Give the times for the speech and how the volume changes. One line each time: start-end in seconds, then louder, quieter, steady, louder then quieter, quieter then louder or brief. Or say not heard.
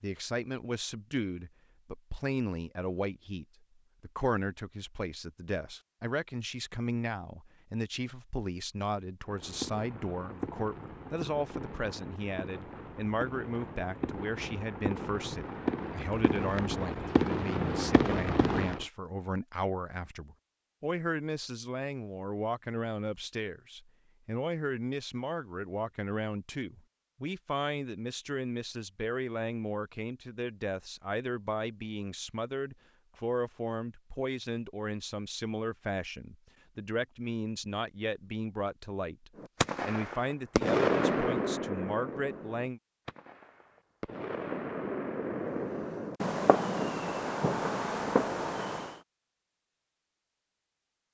0.0-42.8 steady.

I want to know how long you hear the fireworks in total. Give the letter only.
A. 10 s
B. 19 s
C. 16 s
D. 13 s
B.